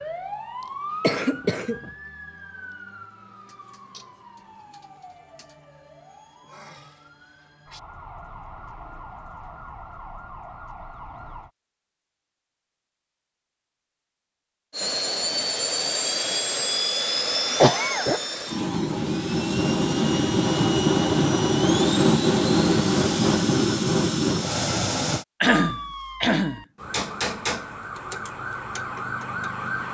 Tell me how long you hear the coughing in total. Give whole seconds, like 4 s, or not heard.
3 s.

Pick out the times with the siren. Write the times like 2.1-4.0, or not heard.
0.0-11.5, 25.5-29.8.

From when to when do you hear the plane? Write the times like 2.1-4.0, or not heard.
14.7-25.2.